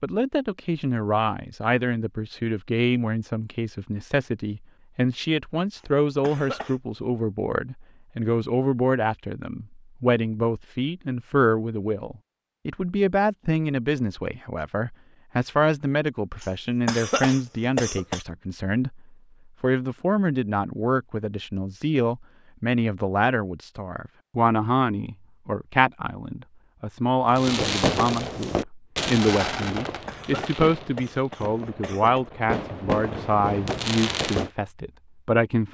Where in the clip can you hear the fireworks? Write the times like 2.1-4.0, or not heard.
27.2-34.5.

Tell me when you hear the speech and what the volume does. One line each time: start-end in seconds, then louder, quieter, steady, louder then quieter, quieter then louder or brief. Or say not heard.
0.0-35.6 steady.